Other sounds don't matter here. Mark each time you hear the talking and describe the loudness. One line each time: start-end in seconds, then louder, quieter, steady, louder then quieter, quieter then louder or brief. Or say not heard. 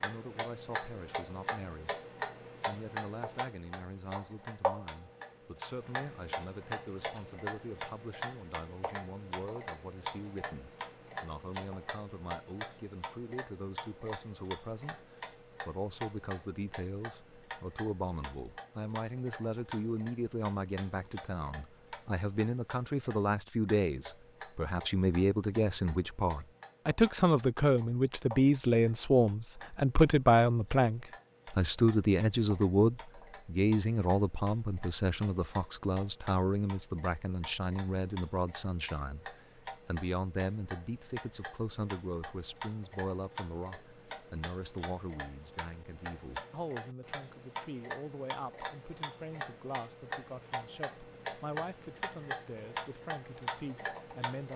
0.0-1.9 brief
2.6-54.5 louder then quieter.